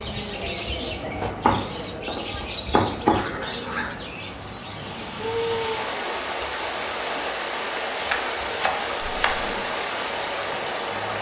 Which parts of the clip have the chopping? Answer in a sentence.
You can hear the chopping from 1.2 to 3.2 s and from 8.0 to 9.4 s.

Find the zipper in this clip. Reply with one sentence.
The zipper can be heard from 3.0 to 4.0 s and from 9.1 to 9.7 s.